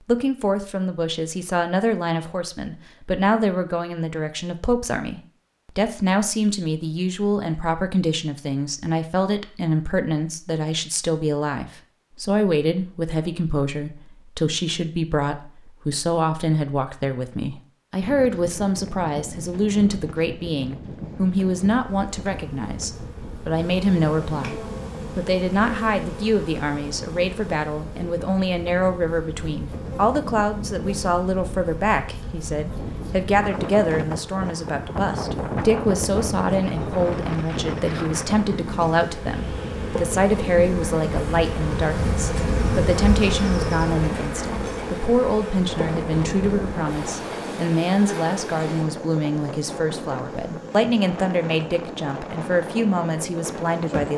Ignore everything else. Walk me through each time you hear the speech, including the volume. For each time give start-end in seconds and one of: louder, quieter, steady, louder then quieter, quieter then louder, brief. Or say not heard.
0.1-54.1 steady.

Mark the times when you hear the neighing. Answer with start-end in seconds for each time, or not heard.
not heard.